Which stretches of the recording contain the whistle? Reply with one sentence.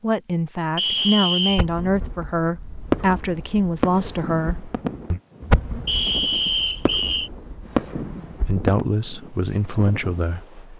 The whistle can be heard from 0.8 to 1.6 s and from 5.8 to 7.3 s.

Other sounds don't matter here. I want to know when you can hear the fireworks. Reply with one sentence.
The fireworks can be heard from 0.9 to 8.8 s.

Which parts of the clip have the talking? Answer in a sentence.
You can hear the talking from 0.0 to 5.2 s and from 8.3 to 10.7 s.